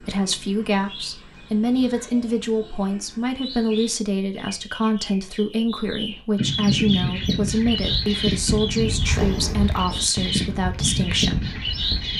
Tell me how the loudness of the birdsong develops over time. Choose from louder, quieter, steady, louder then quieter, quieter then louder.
louder.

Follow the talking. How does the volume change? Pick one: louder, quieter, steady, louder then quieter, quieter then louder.
steady.